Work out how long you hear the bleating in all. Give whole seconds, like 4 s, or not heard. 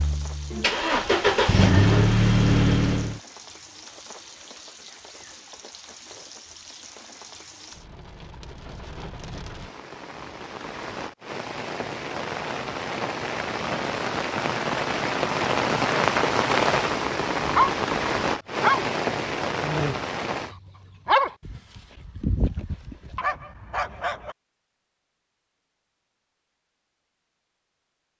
not heard.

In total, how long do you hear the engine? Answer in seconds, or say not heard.
3 s.